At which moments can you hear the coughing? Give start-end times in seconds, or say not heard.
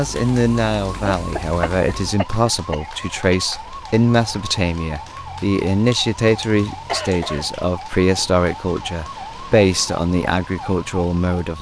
1.1-3.5, 5.8-7.5.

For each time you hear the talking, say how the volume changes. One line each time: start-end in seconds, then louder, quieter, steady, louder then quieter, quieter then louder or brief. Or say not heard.
0.0-11.5 steady.